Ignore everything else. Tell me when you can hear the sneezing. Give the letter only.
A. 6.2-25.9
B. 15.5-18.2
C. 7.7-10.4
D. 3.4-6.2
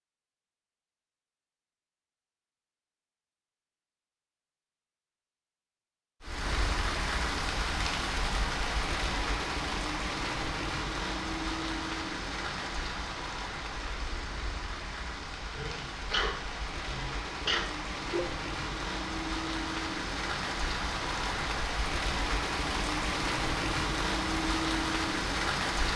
B.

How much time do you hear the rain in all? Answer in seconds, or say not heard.
20 s.